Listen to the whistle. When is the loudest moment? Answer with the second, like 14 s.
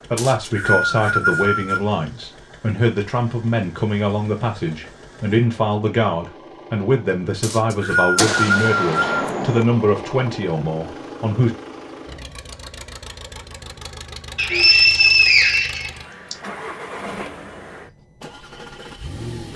15 s.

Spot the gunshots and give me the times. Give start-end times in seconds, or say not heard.
8.2-9.7.